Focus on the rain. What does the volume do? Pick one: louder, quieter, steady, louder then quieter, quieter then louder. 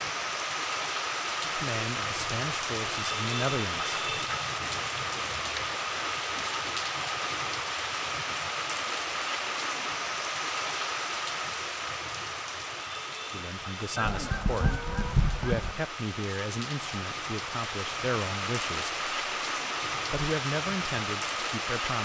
quieter then louder.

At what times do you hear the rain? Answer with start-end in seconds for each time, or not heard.
0.0-21.9.